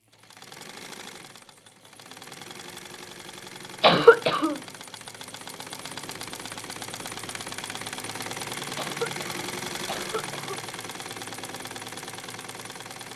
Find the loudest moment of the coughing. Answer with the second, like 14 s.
4 s.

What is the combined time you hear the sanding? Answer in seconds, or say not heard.
not heard.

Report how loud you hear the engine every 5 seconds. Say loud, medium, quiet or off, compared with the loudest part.
medium, loud, loud.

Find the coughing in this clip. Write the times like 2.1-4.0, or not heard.
3.8-4.5, 8.8-10.6.